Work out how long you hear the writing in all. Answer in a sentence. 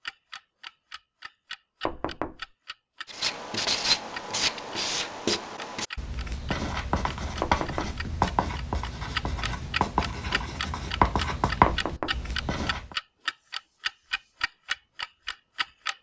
The writing can be heard for 10 seconds in total.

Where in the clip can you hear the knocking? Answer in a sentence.
You can hear the knocking from 1.9 to 2.5 s, from 7.4 to 8.0 s and from 11.7 to 12.2 s.